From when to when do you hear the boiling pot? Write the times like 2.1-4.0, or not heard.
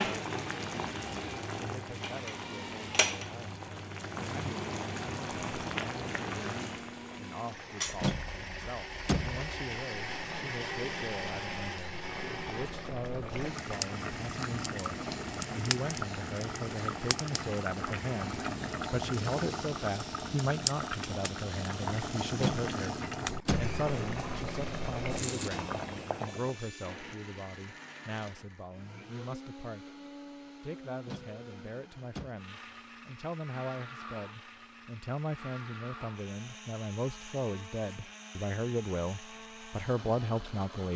0.0-26.6.